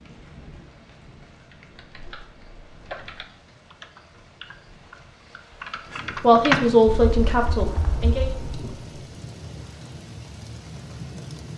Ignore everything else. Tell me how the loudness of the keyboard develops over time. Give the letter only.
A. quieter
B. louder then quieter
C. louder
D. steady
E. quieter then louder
B.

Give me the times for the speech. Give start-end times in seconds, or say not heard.
6.2-8.3.